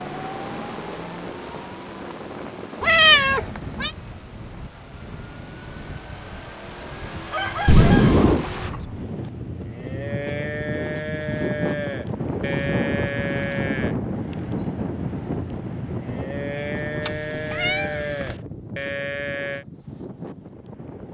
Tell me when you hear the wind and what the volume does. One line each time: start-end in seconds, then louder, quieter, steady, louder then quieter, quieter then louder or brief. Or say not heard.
0.0-21.0 louder then quieter.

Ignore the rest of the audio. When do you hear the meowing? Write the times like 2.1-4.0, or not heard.
2.8-3.9, 7.7-8.4, 17.1-18.4.